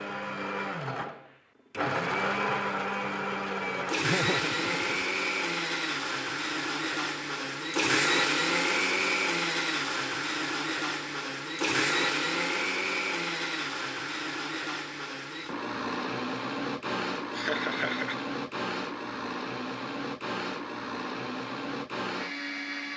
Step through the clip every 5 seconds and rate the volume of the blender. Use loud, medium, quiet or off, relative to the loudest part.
loud, loud, loud, medium, medium.